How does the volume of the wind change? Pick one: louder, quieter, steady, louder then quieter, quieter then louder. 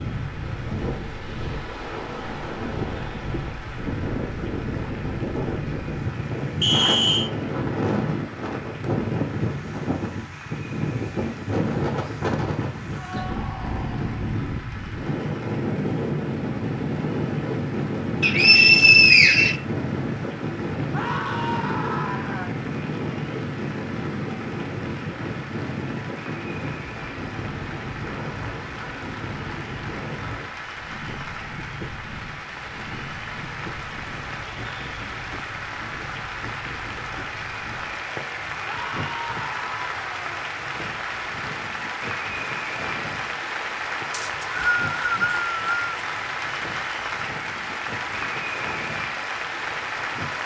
quieter.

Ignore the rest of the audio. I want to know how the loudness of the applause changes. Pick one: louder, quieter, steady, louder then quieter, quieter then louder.
louder.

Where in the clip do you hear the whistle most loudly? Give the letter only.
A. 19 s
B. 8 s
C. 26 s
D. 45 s
A.